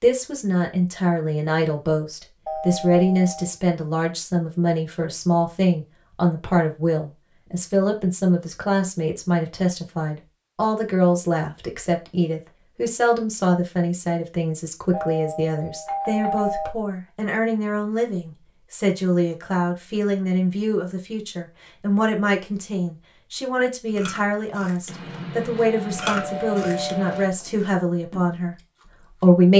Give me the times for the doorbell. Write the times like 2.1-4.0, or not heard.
2.5-3.5, 14.9-16.8, 24.9-27.4.